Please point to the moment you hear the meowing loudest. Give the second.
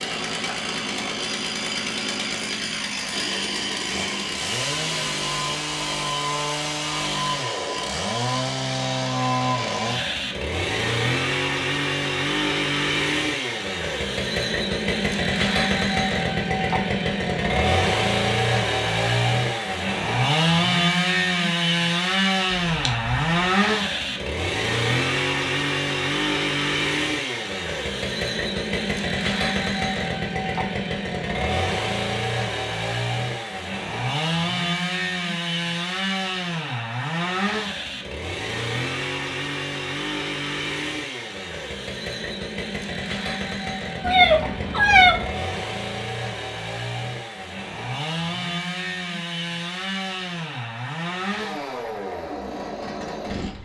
45 s.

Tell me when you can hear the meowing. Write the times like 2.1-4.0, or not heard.
22.5-23.1, 44.0-45.2.